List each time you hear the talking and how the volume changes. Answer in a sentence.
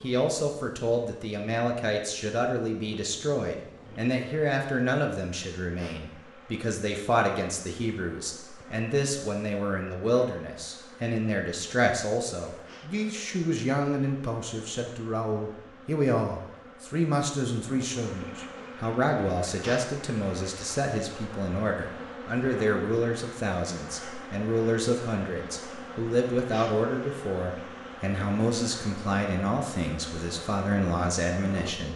You can hear the talking from 0.0 to 31.9 s, at a steady volume.